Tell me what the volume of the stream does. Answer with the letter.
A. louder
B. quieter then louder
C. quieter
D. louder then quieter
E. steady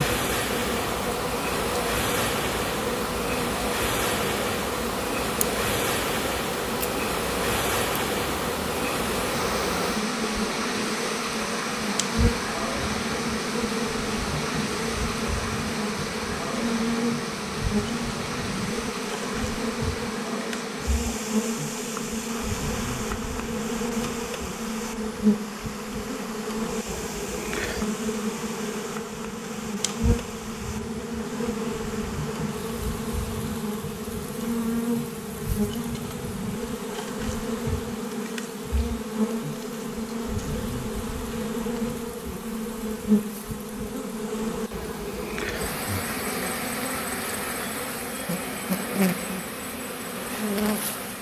C.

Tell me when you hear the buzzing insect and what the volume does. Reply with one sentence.
The buzzing insect can be heard from 0.0 to 51.1 s, at a steady volume.